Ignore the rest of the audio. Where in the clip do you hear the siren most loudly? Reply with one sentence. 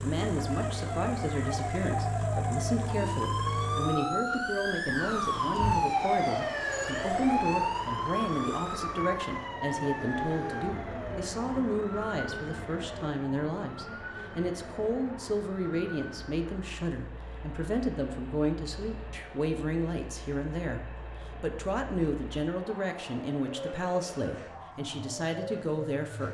The volume of the siren peaks at 6 seconds.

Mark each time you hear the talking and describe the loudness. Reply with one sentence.
The talking can be heard from 0.0 to 26.2 s, at a steady volume.